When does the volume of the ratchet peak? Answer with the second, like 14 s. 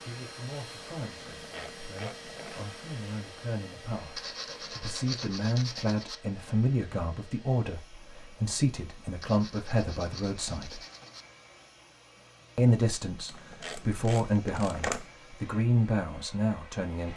15 s.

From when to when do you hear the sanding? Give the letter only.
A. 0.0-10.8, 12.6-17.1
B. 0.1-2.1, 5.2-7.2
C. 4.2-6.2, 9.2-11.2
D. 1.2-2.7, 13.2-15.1
C.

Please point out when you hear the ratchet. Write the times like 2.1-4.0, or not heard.
1.2-2.7, 13.2-15.1.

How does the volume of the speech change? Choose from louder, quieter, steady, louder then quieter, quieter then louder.
louder.